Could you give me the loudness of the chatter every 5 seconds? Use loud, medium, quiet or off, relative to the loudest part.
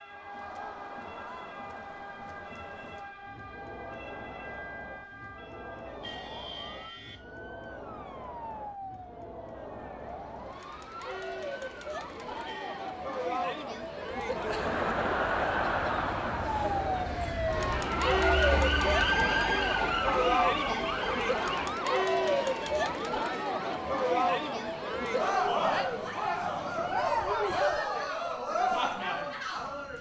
quiet, quiet, medium, loud, loud, loud.